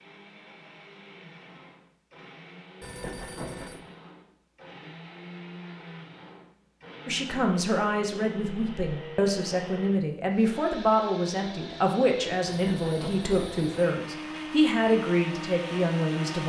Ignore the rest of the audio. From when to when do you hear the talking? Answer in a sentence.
You can hear the talking from 7.0 to 16.4 s.